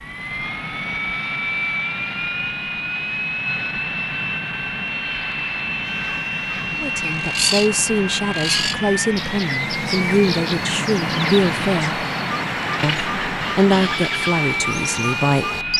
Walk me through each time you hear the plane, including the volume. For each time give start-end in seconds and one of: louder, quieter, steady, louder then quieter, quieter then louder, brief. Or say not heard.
0.0-15.7 steady.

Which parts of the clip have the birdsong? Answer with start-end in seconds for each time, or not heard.
5.8-15.7.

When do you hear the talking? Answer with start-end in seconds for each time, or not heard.
6.8-12.0, 12.8-15.6.